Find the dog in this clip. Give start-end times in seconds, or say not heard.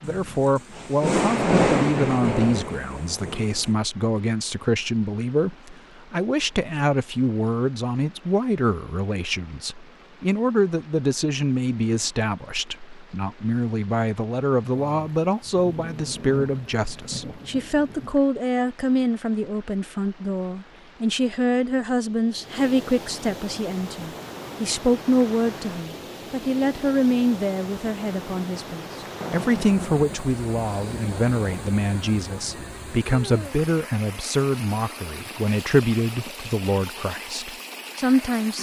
not heard.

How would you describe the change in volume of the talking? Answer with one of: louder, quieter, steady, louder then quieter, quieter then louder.
steady.